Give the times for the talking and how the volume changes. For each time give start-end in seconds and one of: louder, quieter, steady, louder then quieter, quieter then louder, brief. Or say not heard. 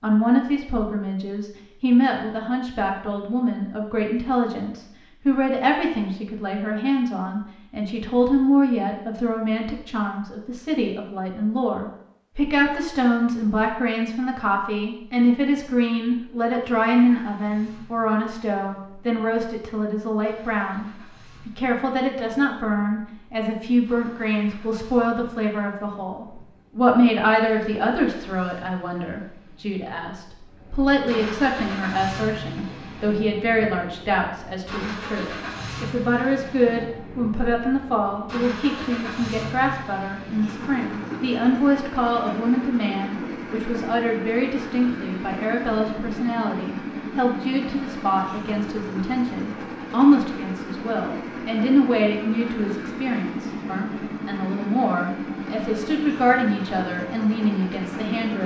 0.0-58.4 steady.